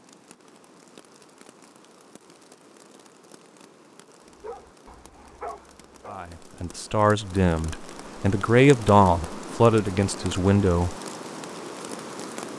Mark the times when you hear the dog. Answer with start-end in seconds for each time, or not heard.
4.4-6.2.